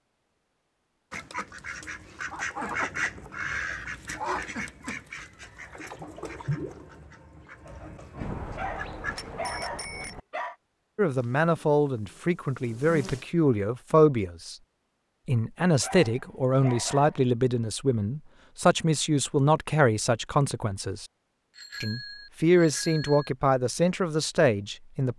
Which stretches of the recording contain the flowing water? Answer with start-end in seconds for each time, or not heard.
not heard.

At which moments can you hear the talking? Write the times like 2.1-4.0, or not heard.
10.9-14.6, 15.2-21.1, 21.8-25.1.